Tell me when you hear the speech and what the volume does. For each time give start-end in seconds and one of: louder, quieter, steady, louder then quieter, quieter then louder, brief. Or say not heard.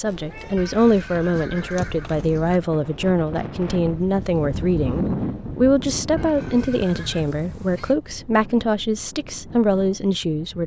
0.0-10.6 steady.